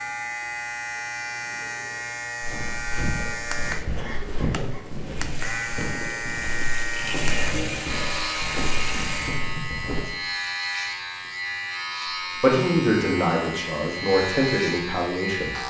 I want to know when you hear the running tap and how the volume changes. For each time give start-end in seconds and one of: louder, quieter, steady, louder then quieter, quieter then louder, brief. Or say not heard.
5.1-9.4 louder.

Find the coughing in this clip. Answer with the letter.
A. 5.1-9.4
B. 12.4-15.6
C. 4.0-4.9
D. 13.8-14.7
C.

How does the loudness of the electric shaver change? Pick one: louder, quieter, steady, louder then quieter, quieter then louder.
steady.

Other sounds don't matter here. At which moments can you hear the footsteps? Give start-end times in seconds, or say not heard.
2.4-10.0.